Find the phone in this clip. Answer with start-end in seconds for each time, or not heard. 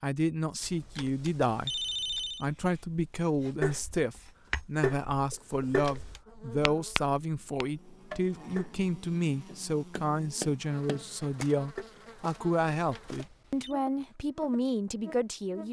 0.6-2.5, 5.5-6.2, 12.8-13.8.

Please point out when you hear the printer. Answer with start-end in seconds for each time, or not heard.
not heard.